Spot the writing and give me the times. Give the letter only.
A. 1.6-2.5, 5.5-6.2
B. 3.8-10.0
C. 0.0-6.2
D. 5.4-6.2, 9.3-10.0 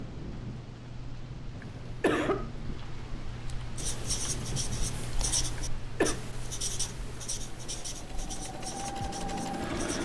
B.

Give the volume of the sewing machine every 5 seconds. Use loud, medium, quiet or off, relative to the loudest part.
off, loud.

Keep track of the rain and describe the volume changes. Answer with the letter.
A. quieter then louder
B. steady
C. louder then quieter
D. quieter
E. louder
D.